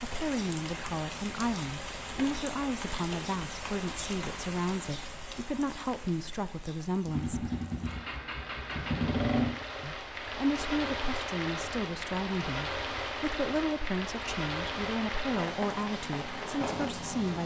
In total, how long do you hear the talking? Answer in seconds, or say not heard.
15 s.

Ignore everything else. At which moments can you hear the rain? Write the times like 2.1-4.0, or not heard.
0.0-17.4.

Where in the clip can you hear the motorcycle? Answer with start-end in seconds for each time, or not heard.
7.0-9.6.